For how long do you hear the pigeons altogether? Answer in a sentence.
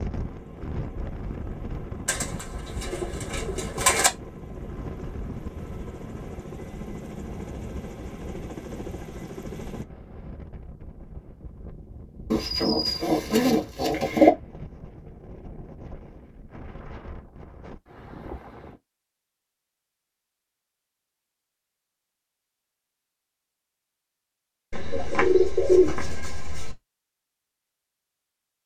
The pigeons can be heard for 6 seconds in total.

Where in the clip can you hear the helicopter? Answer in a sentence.
You can hear the helicopter from 0.1 to 9.8 s.